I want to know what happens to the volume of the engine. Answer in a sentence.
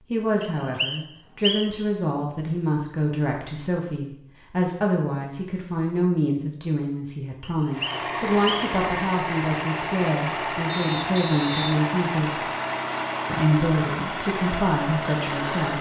The volume of the engine stays about the same.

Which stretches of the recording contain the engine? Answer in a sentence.
The engine can be heard from 7.7 to 15.7 s.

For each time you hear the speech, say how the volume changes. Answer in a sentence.
The speech can be heard from 0.1 to 12.4 s, at a steady volume; and briefly from 13.2 to 15.7 s.